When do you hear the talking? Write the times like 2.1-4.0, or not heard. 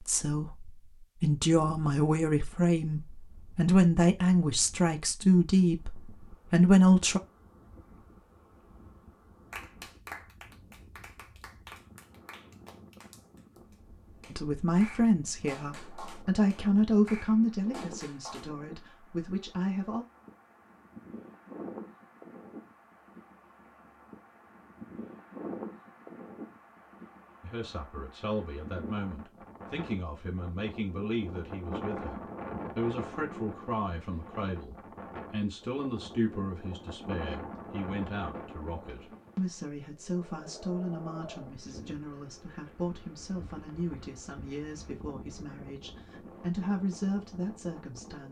0.0-7.2, 14.3-20.1, 27.4-48.2.